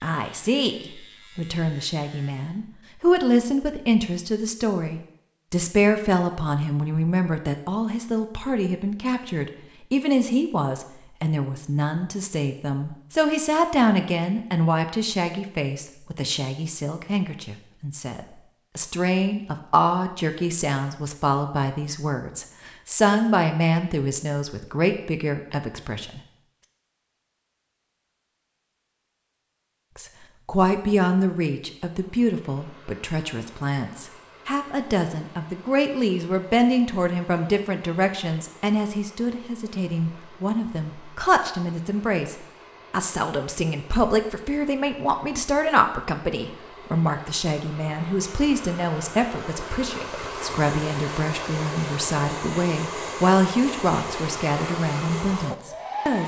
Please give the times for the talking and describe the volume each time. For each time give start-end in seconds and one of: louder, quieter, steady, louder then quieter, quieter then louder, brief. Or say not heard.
0.0-26.2 steady
29.9-56.2 steady.